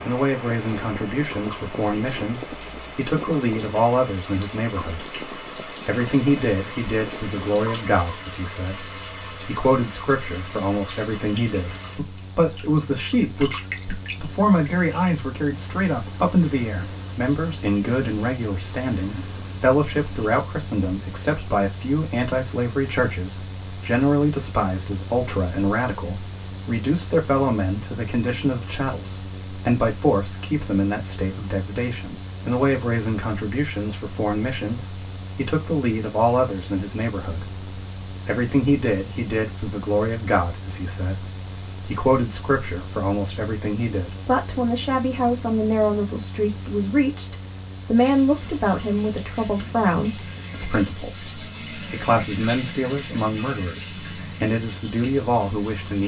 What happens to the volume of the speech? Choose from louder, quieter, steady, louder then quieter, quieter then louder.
steady.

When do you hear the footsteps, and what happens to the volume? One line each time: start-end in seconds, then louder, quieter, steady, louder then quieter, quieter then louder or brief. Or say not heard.
not heard.